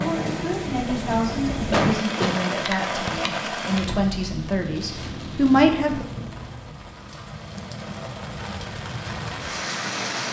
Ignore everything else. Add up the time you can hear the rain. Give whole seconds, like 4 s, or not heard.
10 s.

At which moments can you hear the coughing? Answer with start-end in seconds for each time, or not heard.
1.7-2.4.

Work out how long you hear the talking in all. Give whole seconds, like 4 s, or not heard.
6 s.